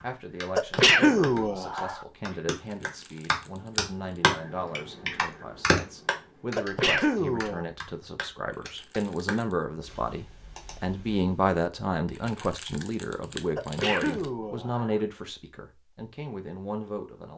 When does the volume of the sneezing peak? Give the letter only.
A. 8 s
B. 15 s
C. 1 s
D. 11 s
C.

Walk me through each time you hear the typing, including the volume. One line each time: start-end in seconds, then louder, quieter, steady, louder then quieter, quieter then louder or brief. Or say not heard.
0.0-11.6 louder then quieter.